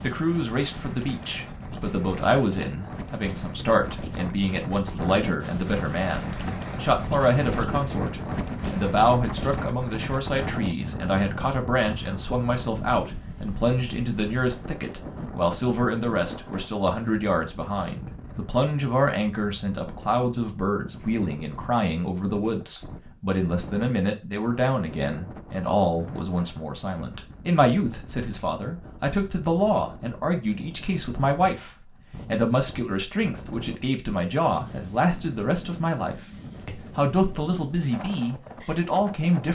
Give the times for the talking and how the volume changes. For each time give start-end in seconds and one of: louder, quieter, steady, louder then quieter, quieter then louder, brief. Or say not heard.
0.0-39.5 steady.